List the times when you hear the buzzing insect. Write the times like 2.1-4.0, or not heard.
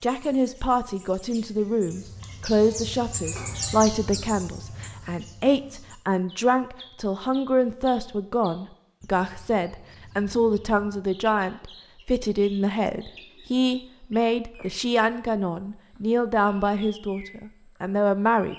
not heard.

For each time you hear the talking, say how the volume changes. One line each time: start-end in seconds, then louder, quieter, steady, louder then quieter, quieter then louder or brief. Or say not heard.
0.0-18.5 steady.